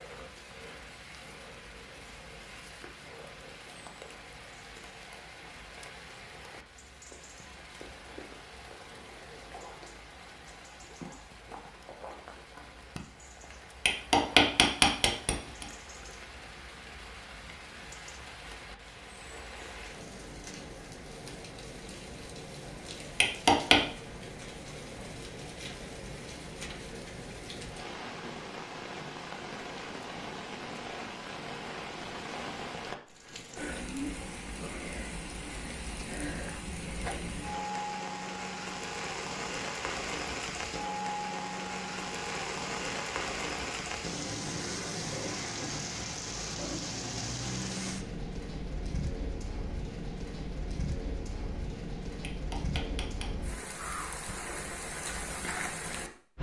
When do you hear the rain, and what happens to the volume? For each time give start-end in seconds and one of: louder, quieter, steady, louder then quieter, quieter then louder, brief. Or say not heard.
0.0-56.3 louder.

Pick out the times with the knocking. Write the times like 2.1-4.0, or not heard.
13.8-15.7, 23.2-23.8, 52.2-53.2.